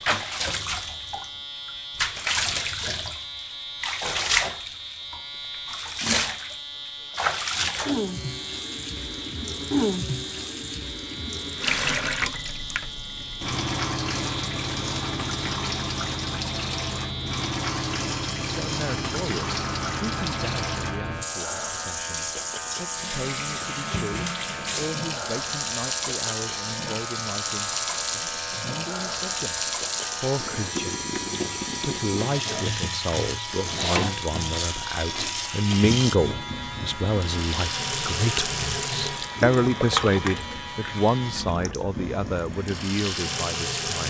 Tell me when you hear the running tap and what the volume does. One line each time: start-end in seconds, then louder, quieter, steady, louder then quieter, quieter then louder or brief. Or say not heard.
0.0-44.0 steady.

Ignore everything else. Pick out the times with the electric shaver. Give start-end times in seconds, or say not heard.
0.0-41.5.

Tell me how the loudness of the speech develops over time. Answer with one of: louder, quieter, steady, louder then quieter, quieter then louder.
louder.